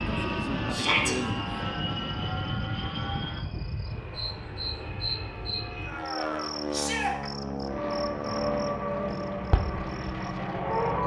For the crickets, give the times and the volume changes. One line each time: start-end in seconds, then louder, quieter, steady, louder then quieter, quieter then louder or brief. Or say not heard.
0.0-11.0 quieter.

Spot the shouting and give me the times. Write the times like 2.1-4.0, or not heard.
0.7-1.1, 6.7-7.2.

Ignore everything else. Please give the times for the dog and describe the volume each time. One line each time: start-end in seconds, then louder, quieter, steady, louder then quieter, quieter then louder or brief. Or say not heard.
not heard.